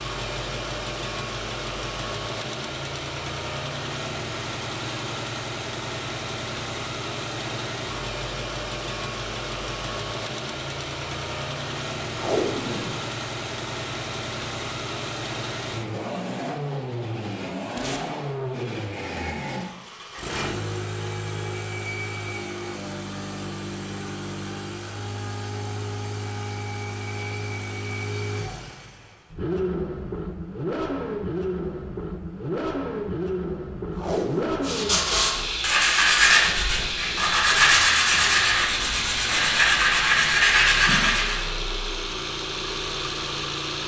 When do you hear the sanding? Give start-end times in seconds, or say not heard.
34.6-41.5.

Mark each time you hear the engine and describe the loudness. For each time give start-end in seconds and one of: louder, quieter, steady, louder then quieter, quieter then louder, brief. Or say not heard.
0.0-43.8 steady.